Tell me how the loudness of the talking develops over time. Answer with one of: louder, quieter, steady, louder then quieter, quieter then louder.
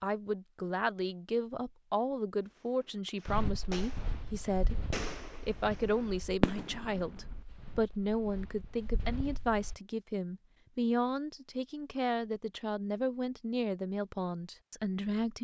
steady.